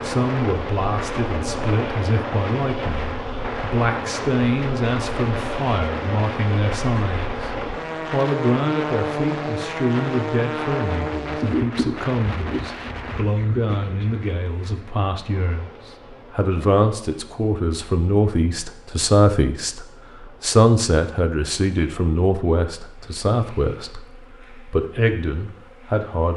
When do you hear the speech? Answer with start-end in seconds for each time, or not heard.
0.0-26.3.